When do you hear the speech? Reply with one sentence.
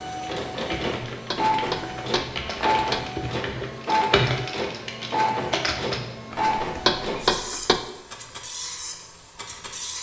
You can't hear the speech here.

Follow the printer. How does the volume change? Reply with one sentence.
The volume of the printer goes down.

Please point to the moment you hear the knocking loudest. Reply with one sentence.
The volume of the knocking peaks at 7 seconds.